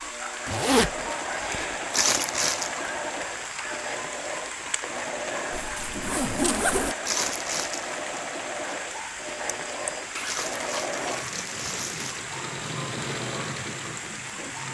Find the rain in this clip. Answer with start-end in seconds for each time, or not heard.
0.0-14.6.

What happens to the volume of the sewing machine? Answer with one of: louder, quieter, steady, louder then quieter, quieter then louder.
steady.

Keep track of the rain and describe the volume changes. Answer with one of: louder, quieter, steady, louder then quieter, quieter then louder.
steady.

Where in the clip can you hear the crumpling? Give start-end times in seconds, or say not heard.
1.9-2.8, 7.0-8.0, 10.2-12.3.